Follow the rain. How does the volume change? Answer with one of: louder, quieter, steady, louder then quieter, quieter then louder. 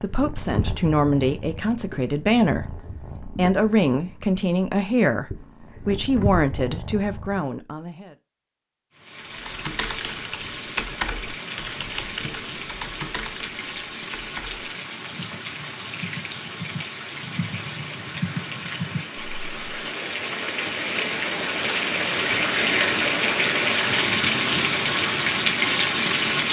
louder.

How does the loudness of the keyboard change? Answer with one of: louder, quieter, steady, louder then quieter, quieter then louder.
quieter then louder.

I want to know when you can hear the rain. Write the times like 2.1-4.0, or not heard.
8.9-26.4.